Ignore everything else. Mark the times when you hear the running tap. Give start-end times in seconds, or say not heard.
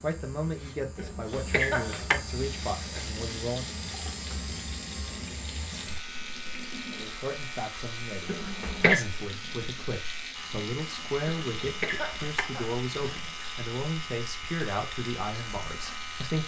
2.3-16.4.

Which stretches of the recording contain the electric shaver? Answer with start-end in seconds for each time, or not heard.
0.0-16.4.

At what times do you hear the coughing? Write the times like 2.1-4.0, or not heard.
0.9-2.2, 8.2-9.1, 11.2-13.2.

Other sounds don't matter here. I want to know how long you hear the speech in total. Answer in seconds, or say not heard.
13 s.